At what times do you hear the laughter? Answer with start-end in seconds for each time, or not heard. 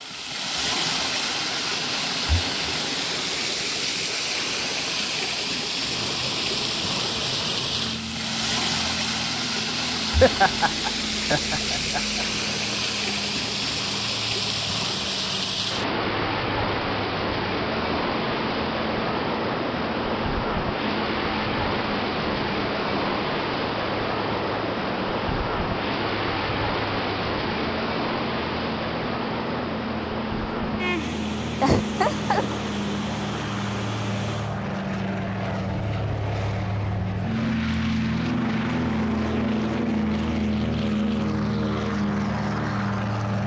10.2-12.2, 31.6-32.5.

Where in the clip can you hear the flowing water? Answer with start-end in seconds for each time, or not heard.
0.0-34.6.